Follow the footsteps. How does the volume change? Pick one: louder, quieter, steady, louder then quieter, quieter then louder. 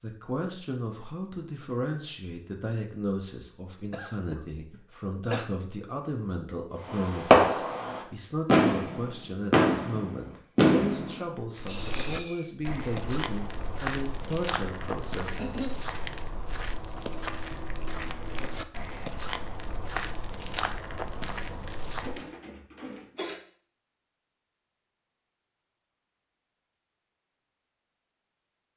steady.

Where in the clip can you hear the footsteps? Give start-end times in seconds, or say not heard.
11.6-22.2.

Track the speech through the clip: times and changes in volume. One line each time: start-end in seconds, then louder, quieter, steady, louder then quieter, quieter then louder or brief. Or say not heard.
0.0-15.6 steady.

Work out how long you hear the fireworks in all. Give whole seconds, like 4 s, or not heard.
6 s.